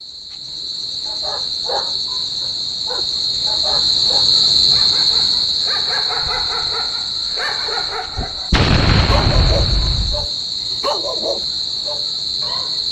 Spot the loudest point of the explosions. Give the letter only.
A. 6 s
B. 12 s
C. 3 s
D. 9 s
D.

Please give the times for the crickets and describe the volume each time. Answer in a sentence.
The crickets can be heard from 0.0 to 12.8 s, getting louder then quieter.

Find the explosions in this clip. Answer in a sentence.
The explosions can be heard from 8.5 to 10.3 s.